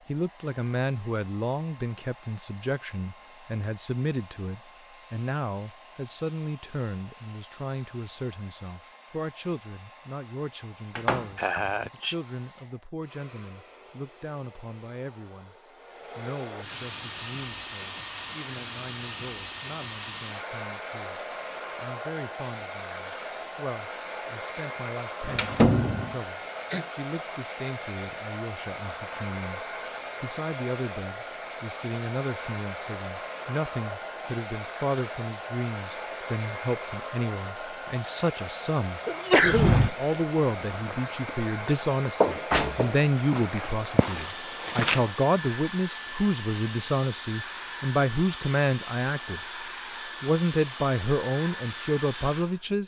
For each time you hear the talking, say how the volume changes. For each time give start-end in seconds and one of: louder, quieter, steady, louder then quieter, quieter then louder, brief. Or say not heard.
0.1-15.6 quieter
16.1-49.4 louder
50.2-52.8 brief.